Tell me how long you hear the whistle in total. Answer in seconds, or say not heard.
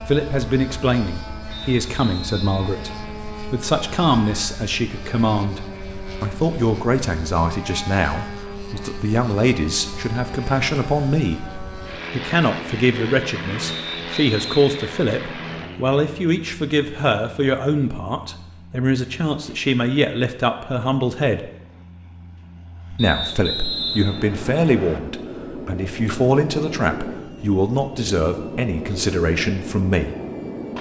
6 s.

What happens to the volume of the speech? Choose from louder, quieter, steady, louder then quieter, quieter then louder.
steady.